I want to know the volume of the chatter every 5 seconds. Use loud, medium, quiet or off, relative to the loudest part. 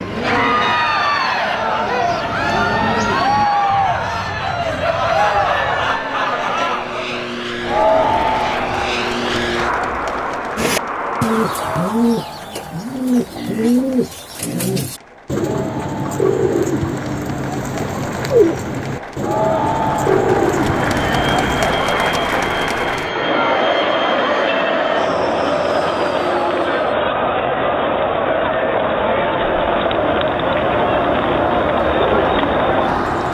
loud, loud, quiet, medium, loud, loud, loud.